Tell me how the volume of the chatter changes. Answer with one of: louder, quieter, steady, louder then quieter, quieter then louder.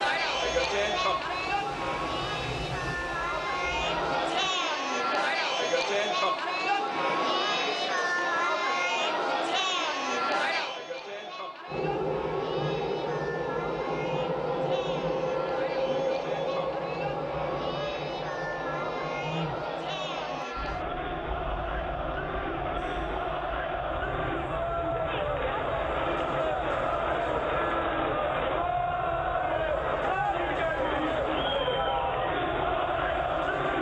quieter then louder.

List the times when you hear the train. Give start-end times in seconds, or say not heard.
0.0-4.5, 11.7-33.7.